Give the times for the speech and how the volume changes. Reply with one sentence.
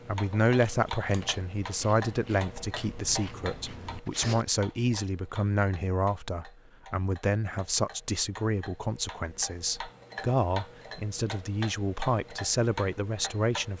You can hear the speech from 0.1 to 13.7 s, at a steady volume.